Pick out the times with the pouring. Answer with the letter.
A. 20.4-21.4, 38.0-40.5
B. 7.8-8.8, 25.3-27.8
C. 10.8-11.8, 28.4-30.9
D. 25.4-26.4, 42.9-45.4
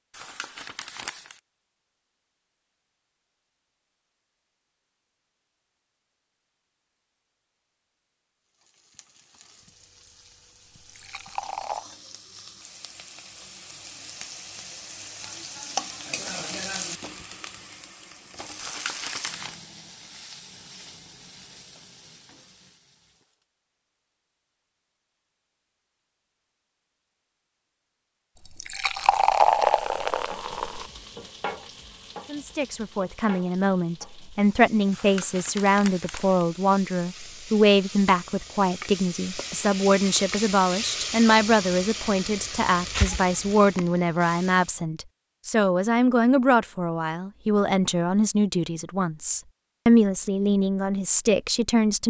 C.